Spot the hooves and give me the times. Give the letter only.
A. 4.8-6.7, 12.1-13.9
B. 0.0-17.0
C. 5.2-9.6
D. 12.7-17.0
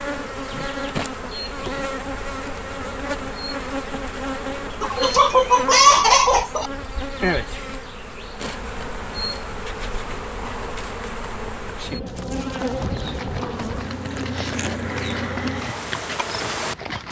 D.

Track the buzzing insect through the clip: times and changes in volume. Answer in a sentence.
You can hear the buzzing insect from 0.0 to 17.0 s, at a steady volume.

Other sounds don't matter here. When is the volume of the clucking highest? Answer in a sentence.
The volume of the clucking peaks at 6 seconds.